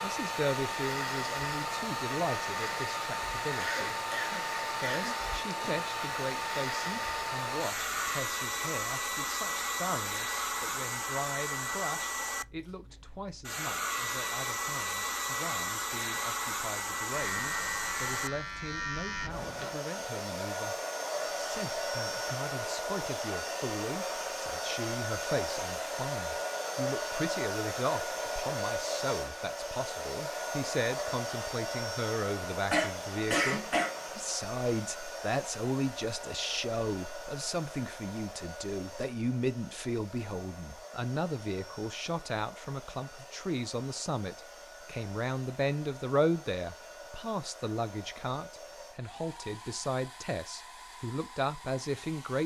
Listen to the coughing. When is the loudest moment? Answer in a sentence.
The loudest moment of the coughing is at 33 seconds.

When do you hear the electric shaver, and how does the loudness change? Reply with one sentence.
You can hear the electric shaver from 0.0 to 8.2 s, at a steady volume; and briefly from 17.1 to 19.8 s.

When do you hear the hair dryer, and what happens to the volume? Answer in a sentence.
You can hear the hair dryer from 0.0 to 52.4 s, getting quieter.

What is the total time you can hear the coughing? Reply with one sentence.
You can hear the coughing for 3 seconds altogether.